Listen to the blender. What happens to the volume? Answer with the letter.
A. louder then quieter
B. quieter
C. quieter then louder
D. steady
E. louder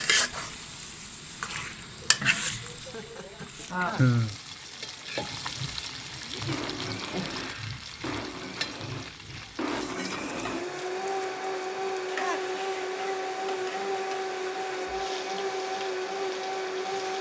E.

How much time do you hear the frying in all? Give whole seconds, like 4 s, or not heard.
17 s.